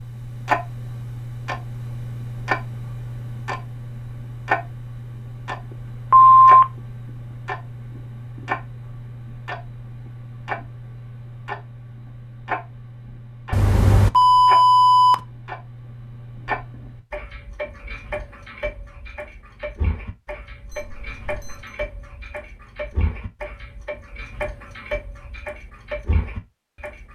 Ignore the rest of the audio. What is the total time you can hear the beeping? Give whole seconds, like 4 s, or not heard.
3 s.